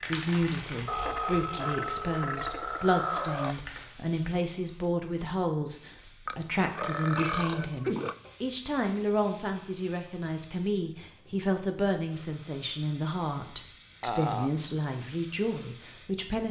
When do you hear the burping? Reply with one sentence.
The burping can be heard from 0.8 to 3.5 s, from 6.2 to 8.2 s and from 14.0 to 14.6 s.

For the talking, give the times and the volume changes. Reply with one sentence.
You can hear the talking from 0.1 to 16.4 s, at a steady volume.